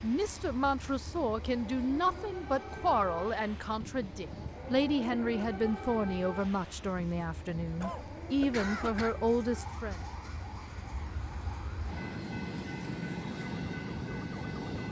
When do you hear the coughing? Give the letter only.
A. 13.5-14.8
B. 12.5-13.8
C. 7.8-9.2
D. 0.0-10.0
C.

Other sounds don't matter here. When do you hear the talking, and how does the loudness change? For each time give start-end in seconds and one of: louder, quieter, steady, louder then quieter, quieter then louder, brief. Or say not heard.
0.0-10.0 steady.